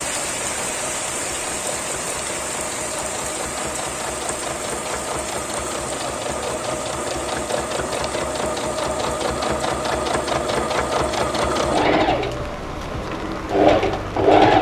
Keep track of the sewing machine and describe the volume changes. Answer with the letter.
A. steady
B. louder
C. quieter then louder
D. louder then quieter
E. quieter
B.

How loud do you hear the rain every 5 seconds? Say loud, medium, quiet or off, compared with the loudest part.
loud, medium, medium.